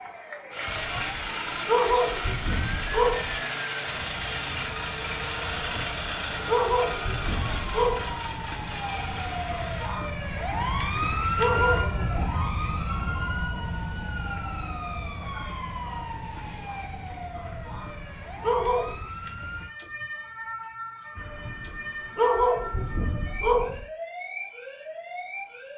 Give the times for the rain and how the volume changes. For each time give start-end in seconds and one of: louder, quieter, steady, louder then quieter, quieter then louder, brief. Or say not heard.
not heard.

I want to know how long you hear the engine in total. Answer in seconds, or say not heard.
10 s.